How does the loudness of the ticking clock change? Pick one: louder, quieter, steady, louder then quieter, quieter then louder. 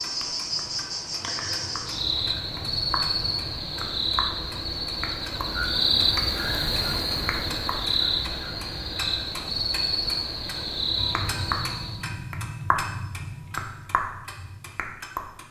louder.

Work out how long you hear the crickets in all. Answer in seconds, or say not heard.
12 s.